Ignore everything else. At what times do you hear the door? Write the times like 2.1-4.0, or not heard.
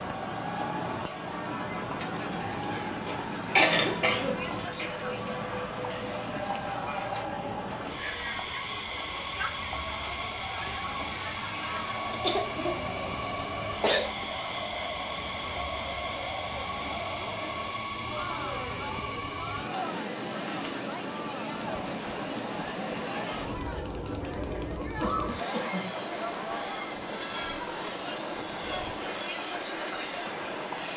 not heard.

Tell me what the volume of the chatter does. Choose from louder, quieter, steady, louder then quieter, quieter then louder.
steady.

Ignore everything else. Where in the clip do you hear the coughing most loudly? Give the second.
4 s.